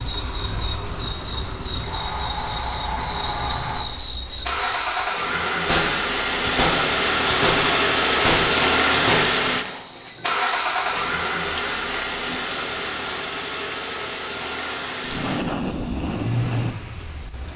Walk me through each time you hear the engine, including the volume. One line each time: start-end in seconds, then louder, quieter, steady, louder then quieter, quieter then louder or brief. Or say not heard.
0.0-17.5 louder then quieter.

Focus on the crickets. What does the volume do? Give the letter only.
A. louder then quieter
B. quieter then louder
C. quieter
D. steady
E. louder
C.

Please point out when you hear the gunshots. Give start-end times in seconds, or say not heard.
5.6-9.3.